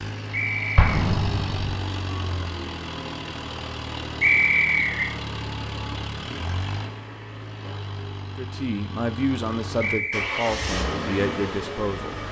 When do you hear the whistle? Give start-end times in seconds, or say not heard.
0.3-1.0, 4.2-5.0, 9.8-10.4.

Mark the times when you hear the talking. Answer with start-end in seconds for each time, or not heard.
8.3-12.2.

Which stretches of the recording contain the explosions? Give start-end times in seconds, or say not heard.
0.8-1.7.